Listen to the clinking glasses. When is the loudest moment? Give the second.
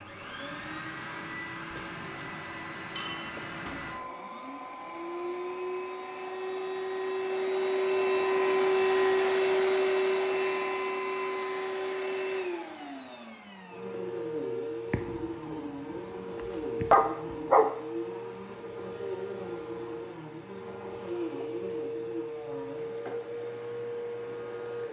3 s.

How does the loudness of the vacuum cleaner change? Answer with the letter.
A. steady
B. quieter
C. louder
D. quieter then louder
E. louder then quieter
E.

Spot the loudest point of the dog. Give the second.
17 s.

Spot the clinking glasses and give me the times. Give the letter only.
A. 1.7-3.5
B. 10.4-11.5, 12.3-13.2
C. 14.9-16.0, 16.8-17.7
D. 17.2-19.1
A.